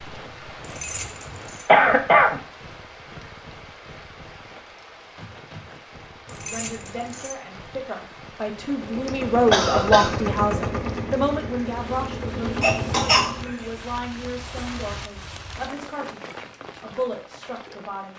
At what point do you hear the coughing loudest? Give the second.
2 s.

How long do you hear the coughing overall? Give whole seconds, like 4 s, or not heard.
3 s.